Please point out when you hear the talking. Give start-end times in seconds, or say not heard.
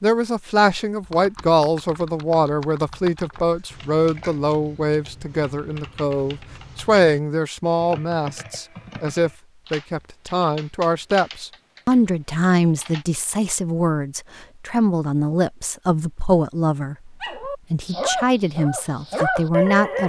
0.0-20.0.